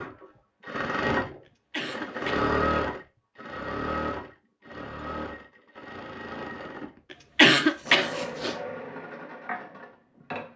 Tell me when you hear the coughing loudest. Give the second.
8 s.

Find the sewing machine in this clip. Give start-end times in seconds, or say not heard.
0.0-10.5.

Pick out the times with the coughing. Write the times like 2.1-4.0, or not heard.
1.7-2.5, 7.3-8.6.